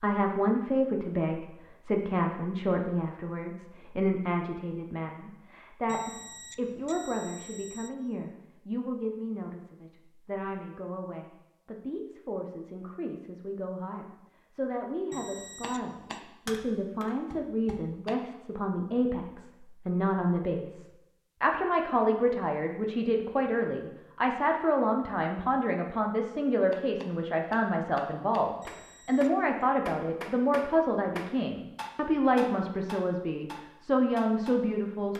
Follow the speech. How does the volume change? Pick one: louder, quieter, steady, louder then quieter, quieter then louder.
quieter then louder.